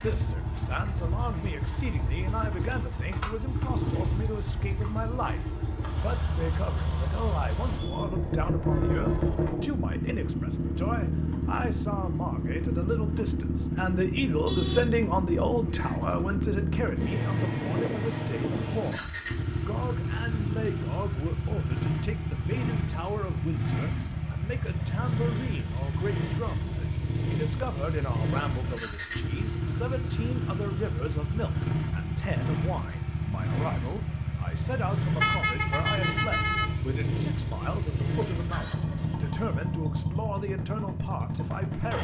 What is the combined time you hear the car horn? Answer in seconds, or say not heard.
5 s.